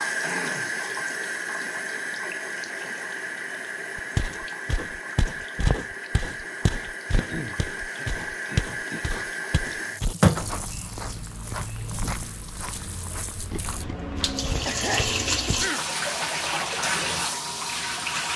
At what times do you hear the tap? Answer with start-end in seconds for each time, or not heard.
0.0-18.3.